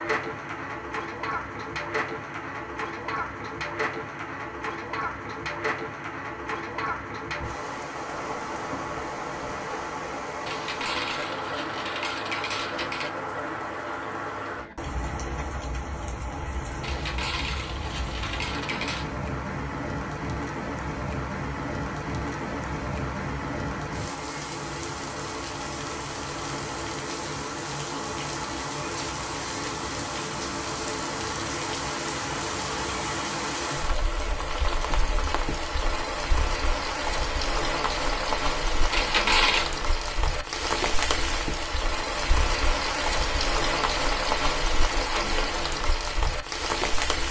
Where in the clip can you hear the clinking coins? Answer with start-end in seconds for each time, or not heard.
10.4-13.1, 16.8-19.1, 38.9-39.7.